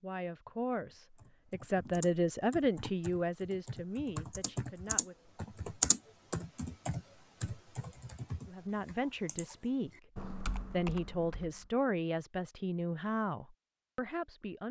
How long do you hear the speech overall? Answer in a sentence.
The speech can be heard for 11 seconds in total.